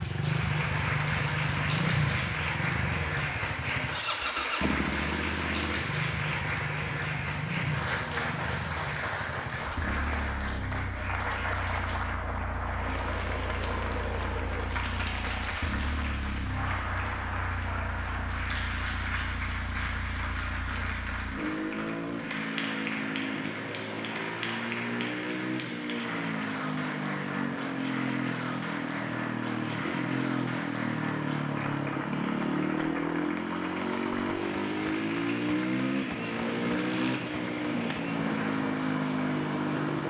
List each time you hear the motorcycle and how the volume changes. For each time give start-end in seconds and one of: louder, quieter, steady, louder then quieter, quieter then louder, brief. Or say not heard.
0.0-40.0 quieter then louder.